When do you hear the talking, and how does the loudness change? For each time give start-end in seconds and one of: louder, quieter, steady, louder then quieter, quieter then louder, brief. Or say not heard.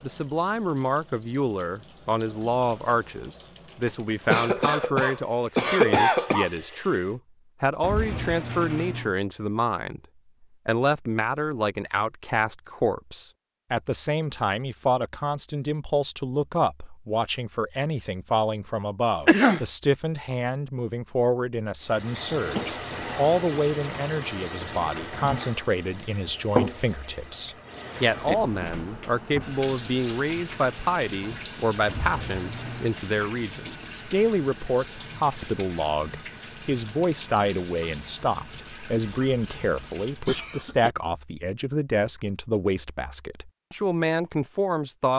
0.0-10.0 steady
10.7-45.1 steady.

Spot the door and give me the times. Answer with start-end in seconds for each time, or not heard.
7.8-9.2, 31.9-33.0.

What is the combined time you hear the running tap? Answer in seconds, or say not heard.
26 s.